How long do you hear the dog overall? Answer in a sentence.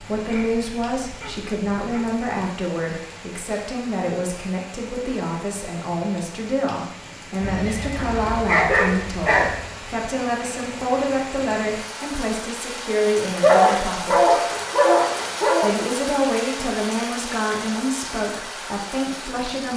The dog can be heard for 6 seconds in total.